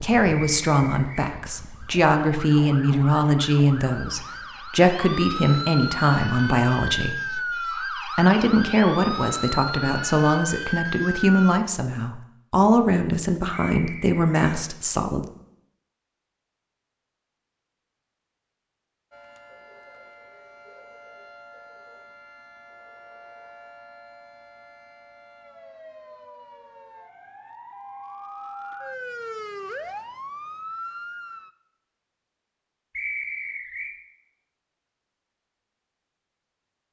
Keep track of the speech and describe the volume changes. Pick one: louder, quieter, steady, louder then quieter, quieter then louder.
steady.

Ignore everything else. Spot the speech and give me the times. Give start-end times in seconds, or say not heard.
0.0-15.2.